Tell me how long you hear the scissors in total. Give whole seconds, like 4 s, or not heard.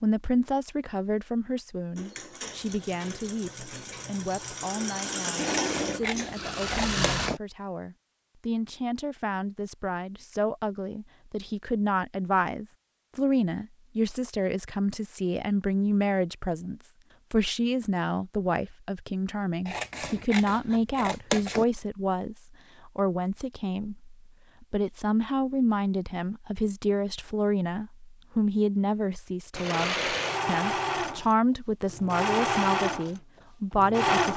4 s.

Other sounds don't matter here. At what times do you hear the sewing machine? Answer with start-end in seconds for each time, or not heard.
1.9-7.3, 29.5-34.3.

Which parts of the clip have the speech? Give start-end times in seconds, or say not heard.
0.0-34.3.